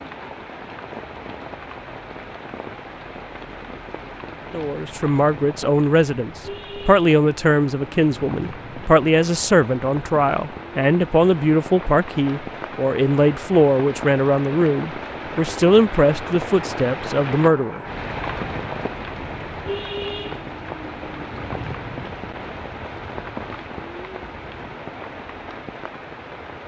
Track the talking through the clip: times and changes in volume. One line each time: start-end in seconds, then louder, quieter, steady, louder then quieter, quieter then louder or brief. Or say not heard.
4.5-17.8 steady.